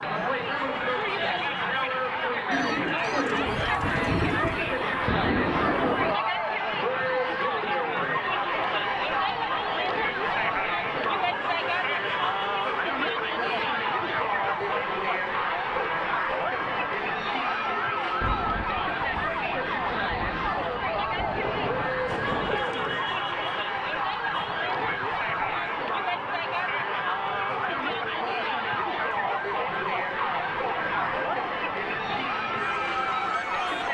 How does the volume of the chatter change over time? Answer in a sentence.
The volume of the chatter stays about the same.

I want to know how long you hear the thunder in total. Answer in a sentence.
You can hear the thunder for 7 seconds altogether.